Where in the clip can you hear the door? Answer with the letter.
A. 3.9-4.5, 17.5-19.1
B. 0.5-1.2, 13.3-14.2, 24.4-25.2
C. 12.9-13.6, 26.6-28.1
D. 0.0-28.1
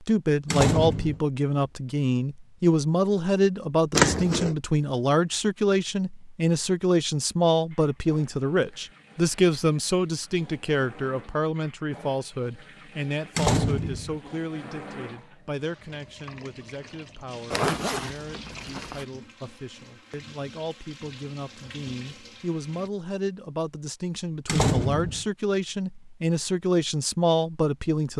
B.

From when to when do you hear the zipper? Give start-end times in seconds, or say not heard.
3.9-4.5, 17.5-19.1.